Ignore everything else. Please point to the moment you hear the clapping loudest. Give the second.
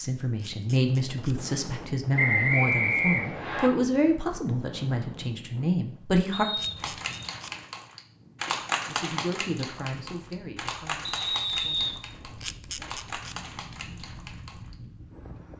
9 s.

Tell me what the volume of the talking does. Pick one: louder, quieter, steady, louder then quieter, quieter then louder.
quieter.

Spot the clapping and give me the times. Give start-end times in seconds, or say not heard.
6.8-14.8.